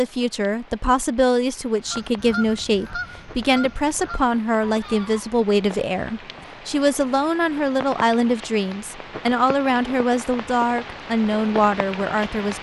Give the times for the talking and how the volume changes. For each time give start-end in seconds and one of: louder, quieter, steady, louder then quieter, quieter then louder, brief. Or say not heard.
0.0-12.5 steady.